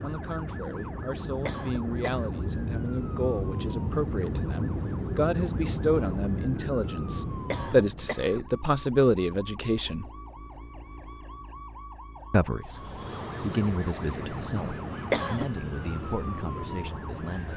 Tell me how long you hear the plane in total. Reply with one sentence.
You can hear the plane for 13 seconds altogether.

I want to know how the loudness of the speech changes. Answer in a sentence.
The loudness of the speech goes up, then down.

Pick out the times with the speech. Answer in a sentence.
You can hear the speech from 0.0 to 10.1 s and from 12.3 to 17.5 s.